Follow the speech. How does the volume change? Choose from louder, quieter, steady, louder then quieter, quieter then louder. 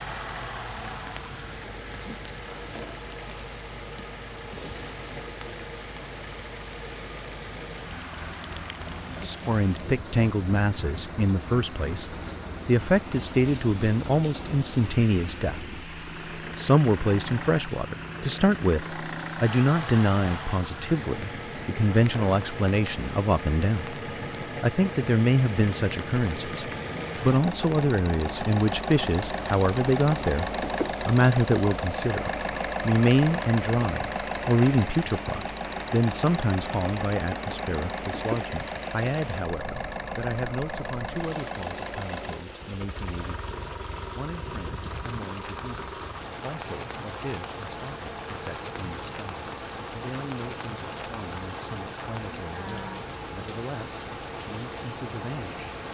quieter.